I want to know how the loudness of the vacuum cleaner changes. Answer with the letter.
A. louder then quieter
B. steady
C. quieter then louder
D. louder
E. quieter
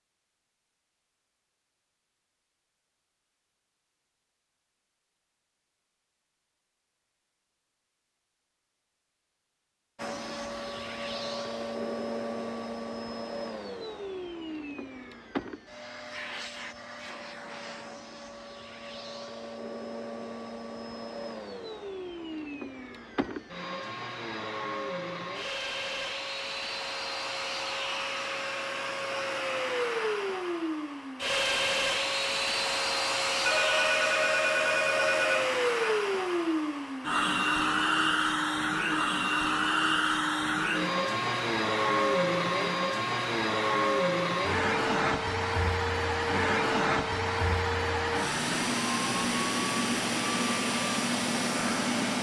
D.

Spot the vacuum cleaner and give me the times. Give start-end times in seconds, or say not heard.
9.9-52.1.